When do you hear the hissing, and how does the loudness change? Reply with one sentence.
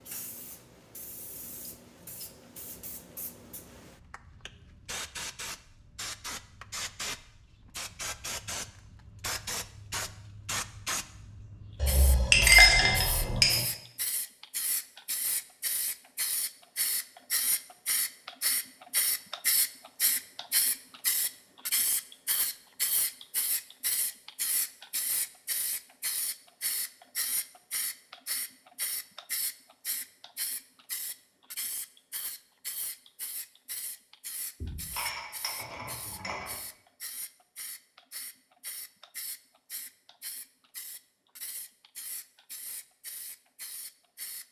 You can hear the hissing from 0.0 to 44.4 s, getting louder then quieter.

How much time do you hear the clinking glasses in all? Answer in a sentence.
You can hear the clinking glasses for 4 seconds altogether.